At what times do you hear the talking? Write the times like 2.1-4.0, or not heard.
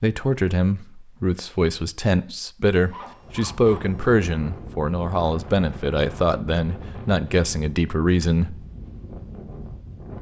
0.0-8.7.